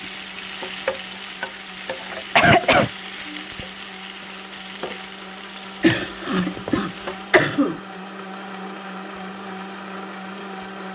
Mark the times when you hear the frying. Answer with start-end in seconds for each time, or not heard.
0.0-7.3.